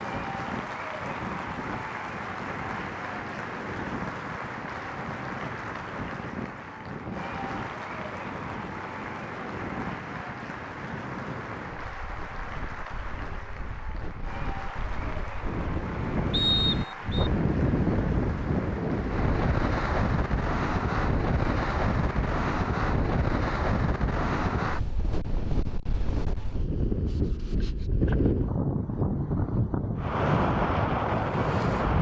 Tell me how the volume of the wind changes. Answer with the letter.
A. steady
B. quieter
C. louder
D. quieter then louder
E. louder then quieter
C.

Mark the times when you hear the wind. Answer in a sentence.
You can hear the wind from 0.0 to 31.9 s.